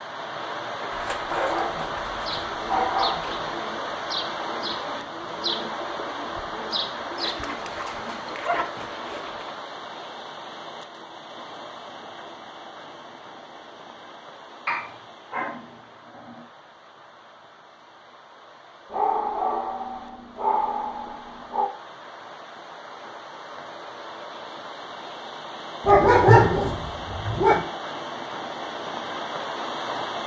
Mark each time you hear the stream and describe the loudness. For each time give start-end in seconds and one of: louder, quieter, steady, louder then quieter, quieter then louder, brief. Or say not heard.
0.0-30.2 quieter then louder.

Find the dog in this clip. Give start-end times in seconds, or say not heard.
0.9-3.5, 7.2-9.6, 14.7-16.4, 18.9-21.7, 25.9-27.7.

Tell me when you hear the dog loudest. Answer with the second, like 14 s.
26 s.